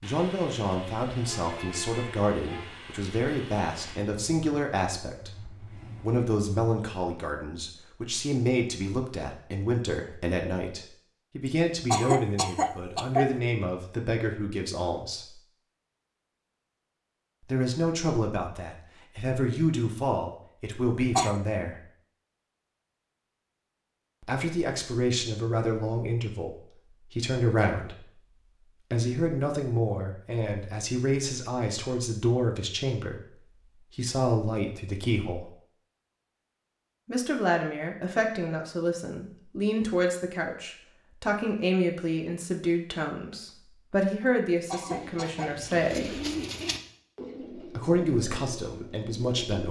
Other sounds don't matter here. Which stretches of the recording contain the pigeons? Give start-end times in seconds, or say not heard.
44.8-49.6.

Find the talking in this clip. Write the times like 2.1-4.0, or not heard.
0.0-15.3, 17.4-21.8, 24.2-28.1, 28.9-35.5, 37.0-46.2, 47.5-49.6.